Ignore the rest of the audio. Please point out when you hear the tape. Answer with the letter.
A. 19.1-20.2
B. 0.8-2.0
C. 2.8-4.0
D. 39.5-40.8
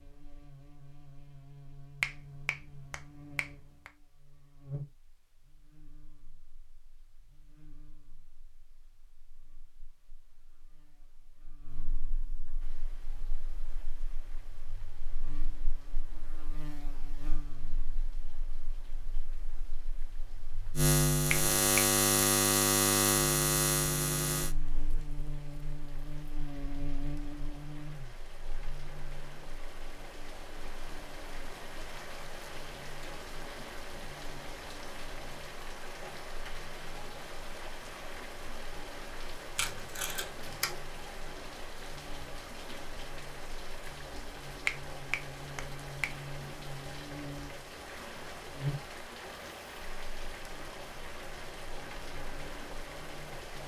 D.